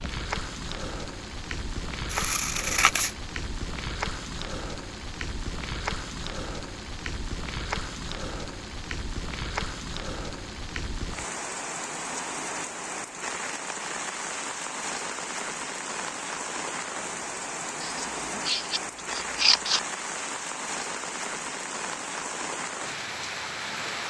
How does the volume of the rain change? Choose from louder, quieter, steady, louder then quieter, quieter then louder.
steady.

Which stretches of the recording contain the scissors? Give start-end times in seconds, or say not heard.
2.1-3.1, 17.8-19.8.